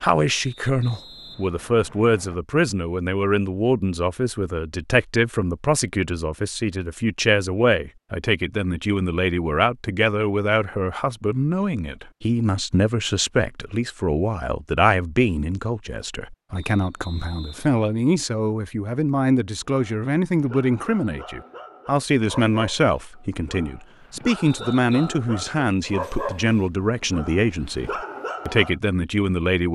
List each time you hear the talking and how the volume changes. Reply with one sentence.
The talking can be heard from 0.0 to 29.6 s, at a steady volume.